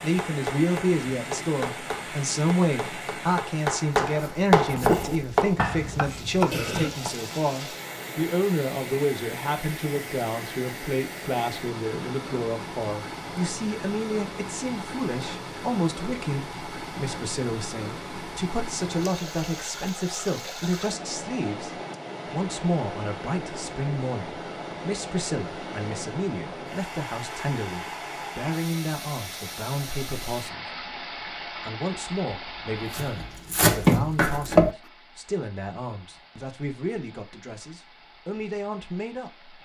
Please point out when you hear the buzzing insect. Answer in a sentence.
The buzzing insect can't be heard in this clip.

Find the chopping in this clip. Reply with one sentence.
You can hear the chopping from 0.0 to 7.2 s and from 32.9 to 34.7 s.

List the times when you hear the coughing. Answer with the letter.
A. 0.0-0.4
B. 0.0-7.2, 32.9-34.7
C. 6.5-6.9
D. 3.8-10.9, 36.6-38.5
C.